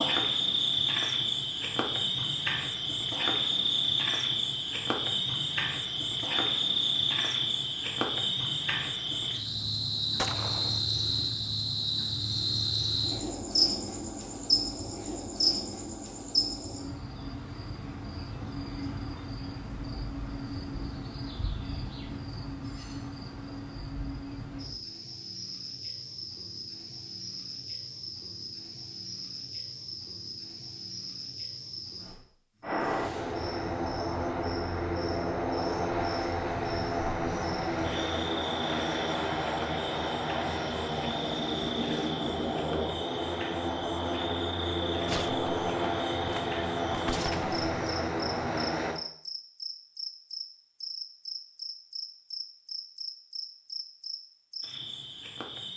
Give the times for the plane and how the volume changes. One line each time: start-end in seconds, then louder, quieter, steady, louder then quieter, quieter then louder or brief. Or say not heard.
32.6-49.0 steady.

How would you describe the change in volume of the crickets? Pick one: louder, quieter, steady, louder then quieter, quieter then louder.
quieter.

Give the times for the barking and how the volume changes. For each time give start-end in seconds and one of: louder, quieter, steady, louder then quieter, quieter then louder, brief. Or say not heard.
not heard.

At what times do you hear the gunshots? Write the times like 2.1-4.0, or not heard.
10.2-10.8, 45.0-48.6.